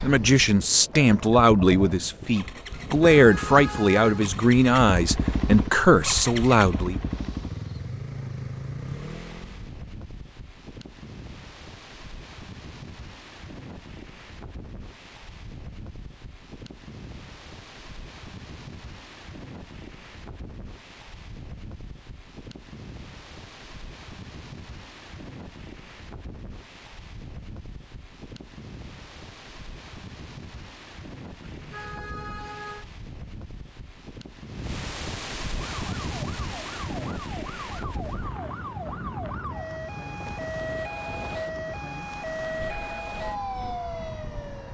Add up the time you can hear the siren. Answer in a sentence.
You can hear the siren for 9 seconds altogether.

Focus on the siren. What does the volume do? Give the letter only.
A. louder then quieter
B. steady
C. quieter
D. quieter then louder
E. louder
E.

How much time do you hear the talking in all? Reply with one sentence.
You can hear the talking for 7 seconds altogether.